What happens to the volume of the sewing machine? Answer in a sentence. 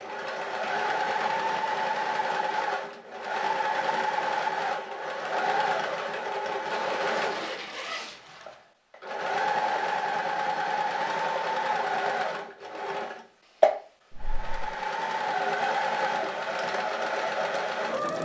The volume of the sewing machine stays about the same.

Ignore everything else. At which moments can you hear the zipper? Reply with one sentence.
You can hear the zipper from 0.6 to 1.7 s, from 6.7 to 8.4 s and from 14.1 to 14.8 s.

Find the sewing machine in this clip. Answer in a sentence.
You can hear the sewing machine from 0.0 to 18.1 s.